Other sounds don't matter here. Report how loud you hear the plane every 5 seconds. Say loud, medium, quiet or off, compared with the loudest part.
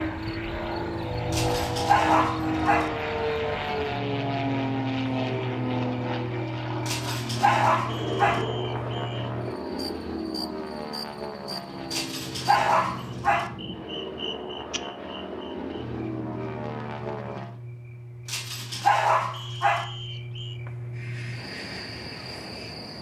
loud, loud, medium, medium, quiet.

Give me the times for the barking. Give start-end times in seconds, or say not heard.
1.3-2.9, 6.8-8.4, 11.9-13.5, 18.2-19.9.